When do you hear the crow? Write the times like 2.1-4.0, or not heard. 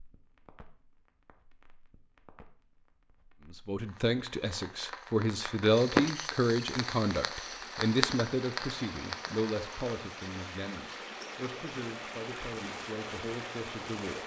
not heard.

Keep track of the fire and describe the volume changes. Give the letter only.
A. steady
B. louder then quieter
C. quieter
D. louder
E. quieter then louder
B.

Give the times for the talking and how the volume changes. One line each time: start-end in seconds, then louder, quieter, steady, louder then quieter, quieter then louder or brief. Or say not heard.
3.5-14.2 quieter.